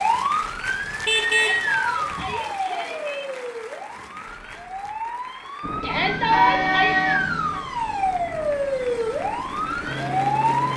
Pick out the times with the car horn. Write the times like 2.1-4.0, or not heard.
0.8-2.4, 5.9-7.6.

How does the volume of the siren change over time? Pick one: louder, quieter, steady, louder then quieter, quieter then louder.
quieter then louder.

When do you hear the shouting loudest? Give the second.
6 s.